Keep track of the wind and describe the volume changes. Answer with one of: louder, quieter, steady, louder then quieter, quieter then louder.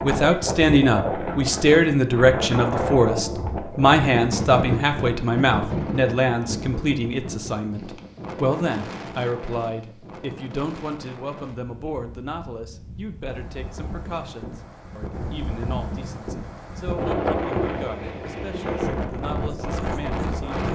quieter then louder.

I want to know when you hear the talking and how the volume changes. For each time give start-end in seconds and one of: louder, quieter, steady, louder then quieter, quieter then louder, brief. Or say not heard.
0.0-20.7 quieter.